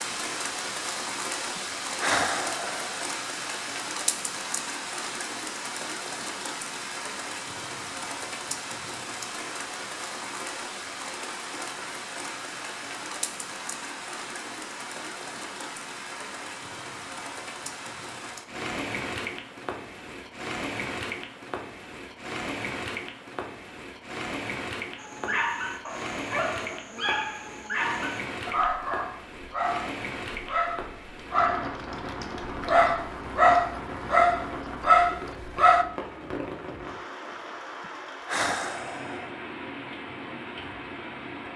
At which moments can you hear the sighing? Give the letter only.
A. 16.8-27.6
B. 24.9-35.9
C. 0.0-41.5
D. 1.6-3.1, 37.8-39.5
D.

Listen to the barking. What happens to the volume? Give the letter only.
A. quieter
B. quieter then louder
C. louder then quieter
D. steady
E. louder
E.